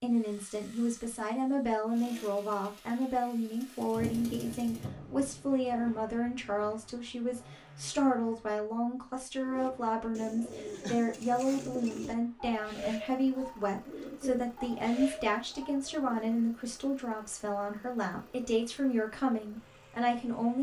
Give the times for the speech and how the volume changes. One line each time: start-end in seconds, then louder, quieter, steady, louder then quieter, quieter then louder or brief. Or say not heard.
0.0-20.5 steady.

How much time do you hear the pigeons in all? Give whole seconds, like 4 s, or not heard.
7 s.